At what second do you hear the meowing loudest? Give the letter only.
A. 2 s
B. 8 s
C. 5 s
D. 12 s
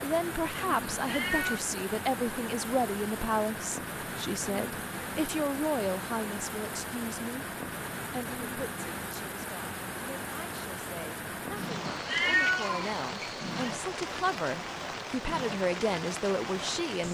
D.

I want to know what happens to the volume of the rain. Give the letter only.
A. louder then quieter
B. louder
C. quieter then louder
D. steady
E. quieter
D.